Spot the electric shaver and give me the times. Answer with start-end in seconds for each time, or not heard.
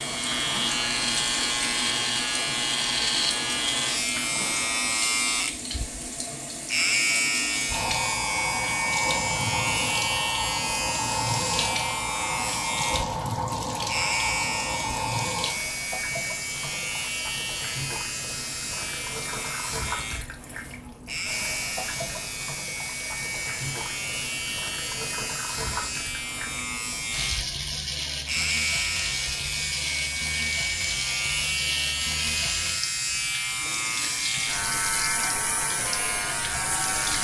0.0-37.1.